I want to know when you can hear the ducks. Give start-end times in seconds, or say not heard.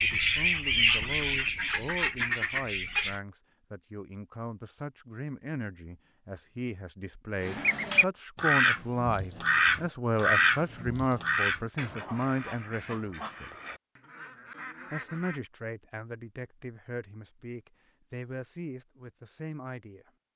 0.0-3.2, 7.4-15.4.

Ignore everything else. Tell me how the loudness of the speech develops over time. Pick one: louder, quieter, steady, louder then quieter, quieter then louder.
louder then quieter.